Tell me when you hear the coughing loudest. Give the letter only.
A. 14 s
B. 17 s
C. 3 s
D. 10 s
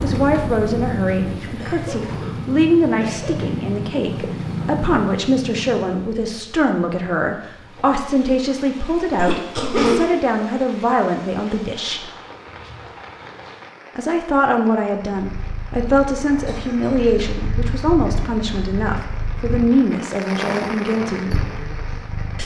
D.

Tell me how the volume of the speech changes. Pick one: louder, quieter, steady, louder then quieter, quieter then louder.
steady.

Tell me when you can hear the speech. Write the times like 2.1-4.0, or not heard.
0.0-12.1, 13.9-21.3.